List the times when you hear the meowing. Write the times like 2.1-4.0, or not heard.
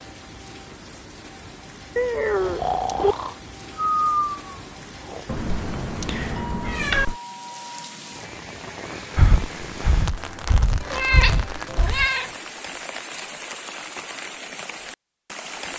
1.9-3.1, 5.2-7.2, 10.9-12.3.